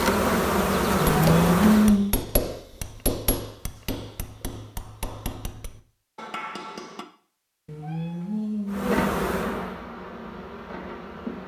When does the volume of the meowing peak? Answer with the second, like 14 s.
2 s.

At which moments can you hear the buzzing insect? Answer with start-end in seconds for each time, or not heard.
0.0-1.9, 8.7-11.4.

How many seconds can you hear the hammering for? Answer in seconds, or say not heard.
6 s.